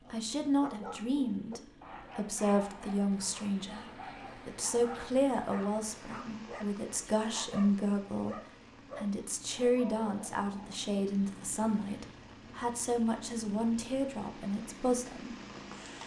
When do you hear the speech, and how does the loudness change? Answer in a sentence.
The speech can be heard from 0.1 to 15.3 s, at a steady volume.